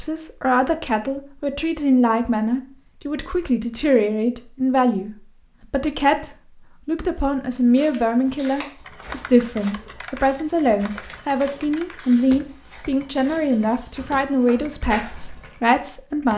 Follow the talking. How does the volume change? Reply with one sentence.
The loudness of the talking stays about the same.